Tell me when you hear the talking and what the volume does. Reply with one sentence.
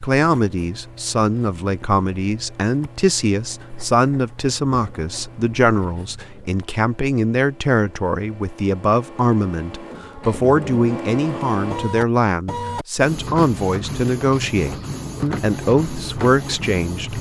The talking can be heard from 0.0 to 17.1 s, at a steady volume.